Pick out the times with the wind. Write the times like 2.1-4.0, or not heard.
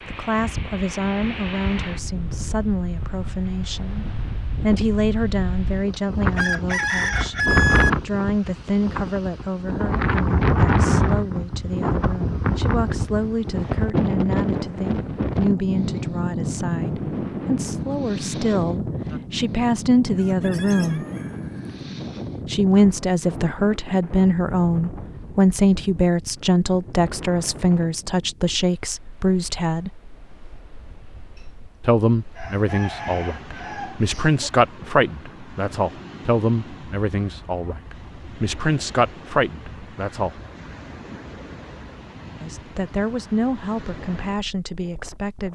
0.0-45.5.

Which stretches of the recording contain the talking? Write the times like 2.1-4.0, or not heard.
0.1-7.3, 8.0-21.1, 22.4-29.9, 31.8-40.4, 42.4-45.5.